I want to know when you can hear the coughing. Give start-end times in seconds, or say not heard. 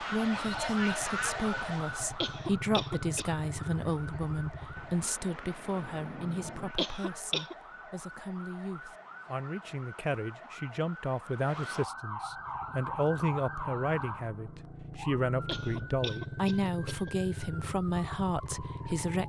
2.2-3.3, 6.8-7.5, 15.4-17.1.